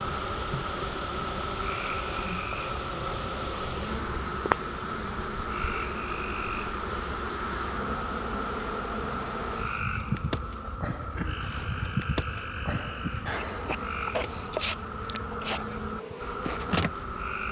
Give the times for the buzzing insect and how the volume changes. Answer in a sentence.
The buzzing insect can be heard from 0.0 to 17.4 s, at a steady volume.